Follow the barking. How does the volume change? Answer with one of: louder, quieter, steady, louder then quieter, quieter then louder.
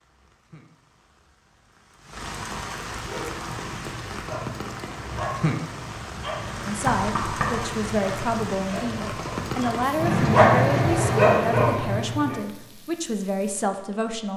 louder.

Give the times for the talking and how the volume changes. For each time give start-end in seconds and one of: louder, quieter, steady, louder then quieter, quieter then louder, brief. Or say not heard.
6.7-14.3 steady.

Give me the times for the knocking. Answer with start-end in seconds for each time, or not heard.
6.8-7.8.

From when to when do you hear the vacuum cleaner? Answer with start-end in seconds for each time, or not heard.
not heard.